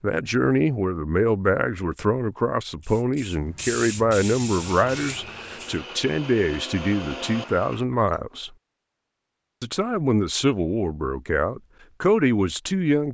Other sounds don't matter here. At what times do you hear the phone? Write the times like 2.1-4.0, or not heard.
not heard.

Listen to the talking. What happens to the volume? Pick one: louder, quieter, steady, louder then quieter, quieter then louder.
steady.